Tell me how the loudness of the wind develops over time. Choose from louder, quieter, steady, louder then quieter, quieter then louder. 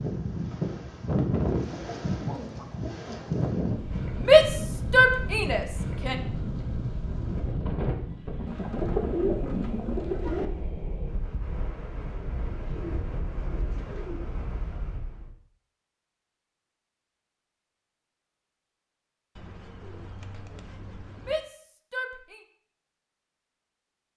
quieter.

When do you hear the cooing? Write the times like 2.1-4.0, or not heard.
1.6-3.3, 8.4-10.4, 12.4-14.2, 19.4-21.4.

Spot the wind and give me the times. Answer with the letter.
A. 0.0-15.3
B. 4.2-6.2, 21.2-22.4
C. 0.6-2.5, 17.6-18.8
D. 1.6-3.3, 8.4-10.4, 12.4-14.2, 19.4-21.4
A.